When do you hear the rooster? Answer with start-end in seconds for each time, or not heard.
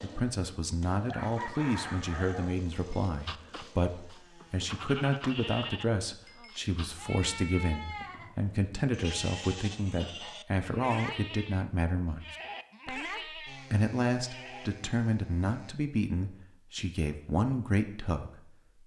1.1-2.6.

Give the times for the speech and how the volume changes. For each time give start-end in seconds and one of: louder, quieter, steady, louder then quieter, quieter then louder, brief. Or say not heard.
0.0-18.6 steady.